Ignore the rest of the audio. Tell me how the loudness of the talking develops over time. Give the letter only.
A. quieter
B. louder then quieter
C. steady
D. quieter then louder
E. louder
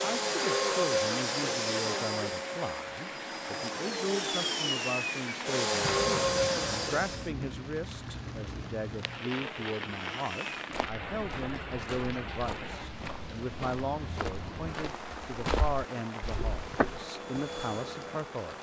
C.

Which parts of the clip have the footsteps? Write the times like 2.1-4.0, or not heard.
10.7-17.1.